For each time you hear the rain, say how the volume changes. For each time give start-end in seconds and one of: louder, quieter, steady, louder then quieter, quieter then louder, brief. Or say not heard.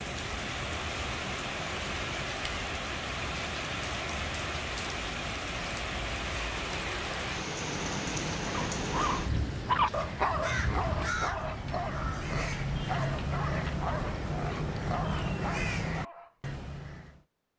0.0-11.1 steady.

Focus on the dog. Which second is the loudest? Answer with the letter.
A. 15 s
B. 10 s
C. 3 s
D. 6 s
B.